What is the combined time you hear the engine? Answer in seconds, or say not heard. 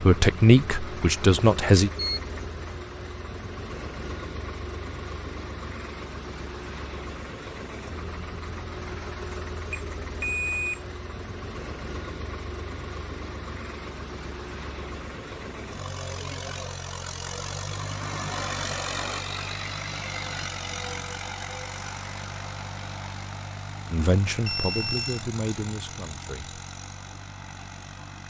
28 s.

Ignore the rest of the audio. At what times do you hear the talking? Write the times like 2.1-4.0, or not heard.
0.0-1.9, 23.9-26.6.